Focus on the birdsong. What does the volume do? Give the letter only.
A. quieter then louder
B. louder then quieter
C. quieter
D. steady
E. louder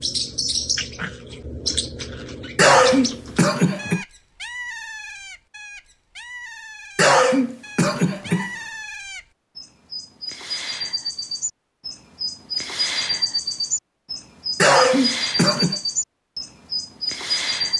A.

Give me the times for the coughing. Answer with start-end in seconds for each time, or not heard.
2.5-4.0, 7.0-8.5, 14.6-15.8.